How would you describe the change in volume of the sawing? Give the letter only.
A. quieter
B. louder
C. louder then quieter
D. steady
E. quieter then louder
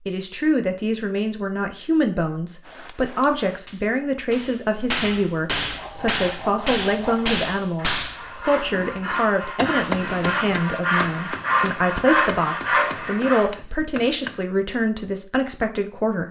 B.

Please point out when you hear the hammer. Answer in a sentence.
You can hear the hammer from 2.6 to 14.4 s.